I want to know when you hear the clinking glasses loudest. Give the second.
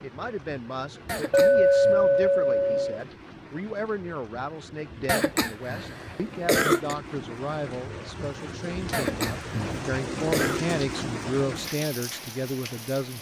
2 s.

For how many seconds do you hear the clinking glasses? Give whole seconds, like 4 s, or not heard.
2 s.